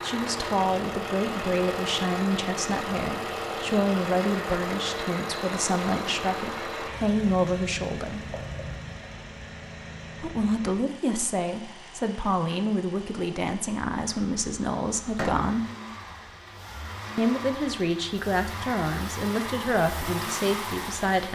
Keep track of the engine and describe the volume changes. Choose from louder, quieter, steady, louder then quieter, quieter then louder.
quieter then louder.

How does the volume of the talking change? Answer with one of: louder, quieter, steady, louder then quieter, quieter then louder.
steady.